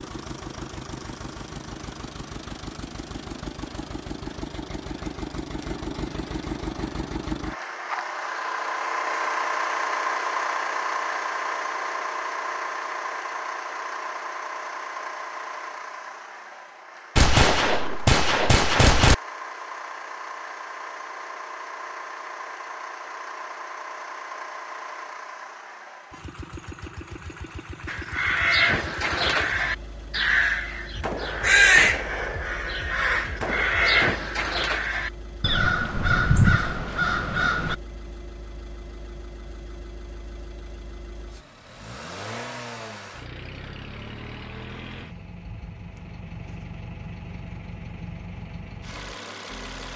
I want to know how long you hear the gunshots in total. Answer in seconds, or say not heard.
5 s.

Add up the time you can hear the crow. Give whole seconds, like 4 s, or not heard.
10 s.